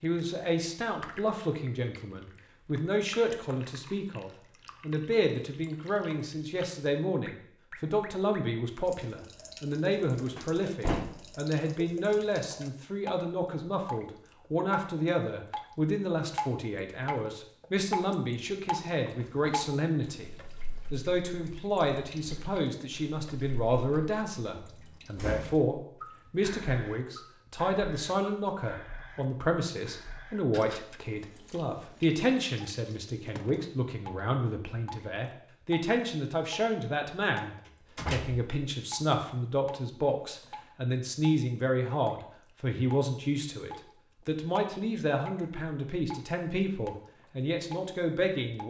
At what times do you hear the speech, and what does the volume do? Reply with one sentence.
You can hear the speech from 0.0 to 20.3 s, at a steady volume; and from 20.9 to 48.6 s, at a steady volume.